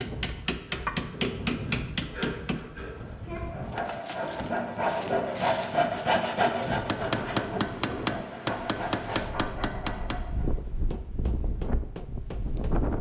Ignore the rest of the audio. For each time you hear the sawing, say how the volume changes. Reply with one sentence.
The sawing can be heard from 0.5 to 10.4 s, getting louder then quieter.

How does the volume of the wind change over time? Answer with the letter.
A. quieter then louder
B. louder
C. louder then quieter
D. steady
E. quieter
D.